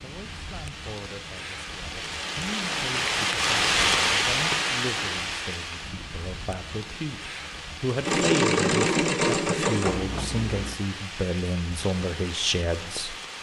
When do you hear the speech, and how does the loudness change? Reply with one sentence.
You can hear the speech from 0.0 to 13.2 s, getting louder.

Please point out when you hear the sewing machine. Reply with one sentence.
You can hear the sewing machine from 8.0 to 10.8 s.